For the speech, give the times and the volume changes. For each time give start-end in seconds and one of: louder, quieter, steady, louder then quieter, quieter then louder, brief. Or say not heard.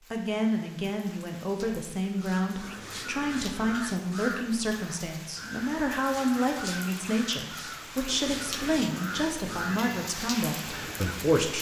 0.1-11.5 steady.